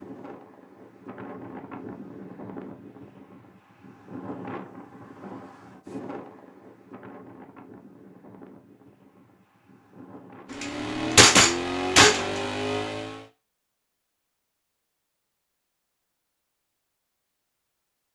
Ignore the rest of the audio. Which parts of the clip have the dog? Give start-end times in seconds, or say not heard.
not heard.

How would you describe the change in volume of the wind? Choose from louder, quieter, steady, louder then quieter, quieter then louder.
quieter.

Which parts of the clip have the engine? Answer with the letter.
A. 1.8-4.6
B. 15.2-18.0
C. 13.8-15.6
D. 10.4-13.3
D.